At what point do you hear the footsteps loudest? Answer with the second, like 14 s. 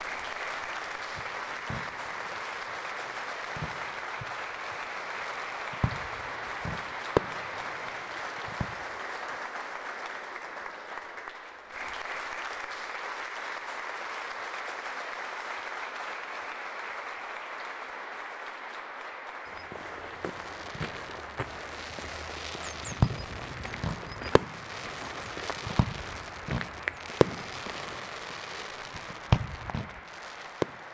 27 s.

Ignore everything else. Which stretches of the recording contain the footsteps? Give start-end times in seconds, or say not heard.
19.4-27.9.